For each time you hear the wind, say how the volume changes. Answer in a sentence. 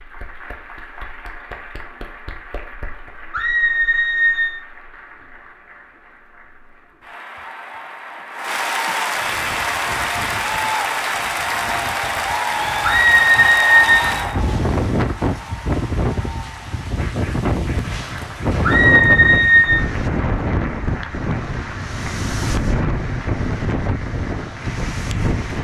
The wind can be heard from 9.1 to 25.5 s, getting louder.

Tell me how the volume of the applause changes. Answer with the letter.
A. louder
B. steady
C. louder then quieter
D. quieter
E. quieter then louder
C.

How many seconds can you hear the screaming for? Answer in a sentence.
You can hear the screaming for 4 seconds altogether.